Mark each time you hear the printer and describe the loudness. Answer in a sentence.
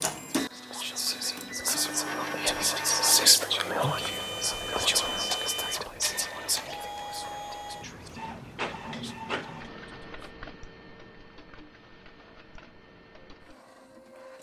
The printer can be heard from 0.0 to 14.3 s, getting quieter.